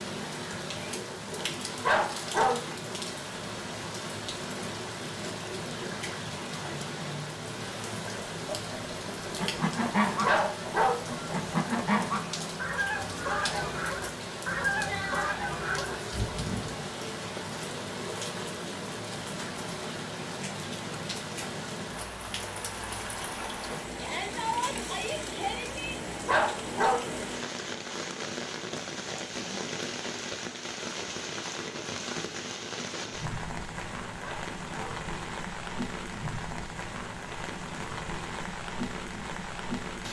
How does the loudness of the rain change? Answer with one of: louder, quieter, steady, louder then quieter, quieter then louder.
steady.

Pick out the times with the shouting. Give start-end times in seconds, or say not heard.
23.9-25.9.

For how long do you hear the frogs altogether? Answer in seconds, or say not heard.
not heard.